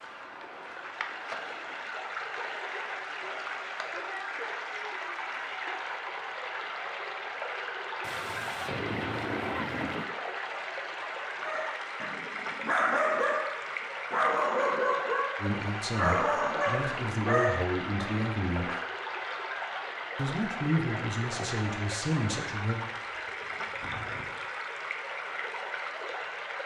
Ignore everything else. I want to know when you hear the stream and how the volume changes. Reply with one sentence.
The stream can be heard from 0.0 to 26.6 s, at a steady volume.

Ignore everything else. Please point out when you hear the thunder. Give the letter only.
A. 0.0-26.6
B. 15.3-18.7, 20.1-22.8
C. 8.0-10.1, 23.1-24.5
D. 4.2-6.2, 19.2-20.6
C.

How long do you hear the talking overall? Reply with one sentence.
The talking can be heard for 6 seconds in total.